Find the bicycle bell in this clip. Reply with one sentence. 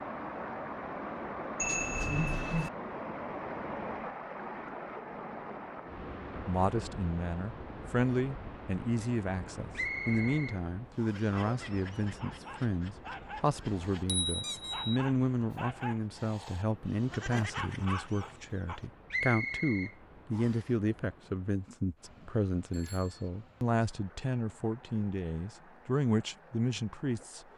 The bicycle bell can be heard from 1.6 to 2.7 s, from 13.9 to 15.0 s and from 22.7 to 23.3 s.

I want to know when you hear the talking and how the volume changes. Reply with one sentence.
You can hear the talking from 6.5 to 27.4 s, at a steady volume.